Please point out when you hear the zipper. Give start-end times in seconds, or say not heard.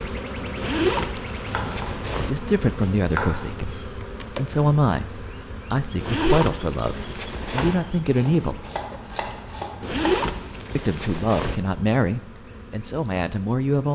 0.6-2.3, 6.0-7.8, 9.8-11.6.